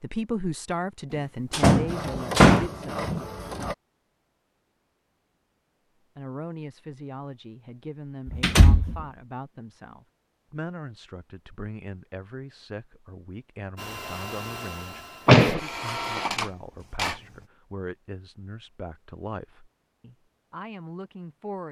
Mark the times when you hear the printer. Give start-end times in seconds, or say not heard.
1.9-3.8, 13.8-17.4.